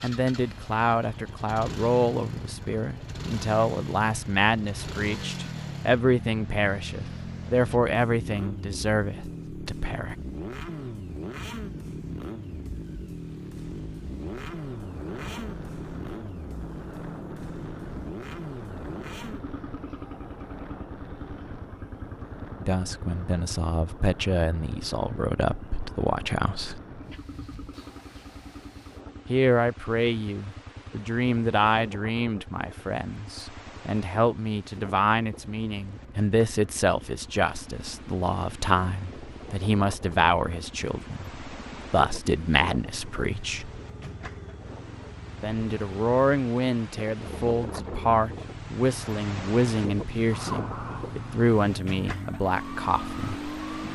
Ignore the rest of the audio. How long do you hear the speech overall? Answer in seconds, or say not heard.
37 s.